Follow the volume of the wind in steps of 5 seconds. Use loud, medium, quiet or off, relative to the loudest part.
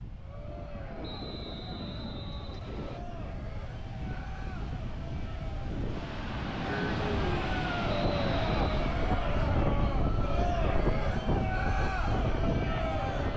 medium, loud, loud.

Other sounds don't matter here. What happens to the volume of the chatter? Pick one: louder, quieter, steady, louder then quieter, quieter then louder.
louder.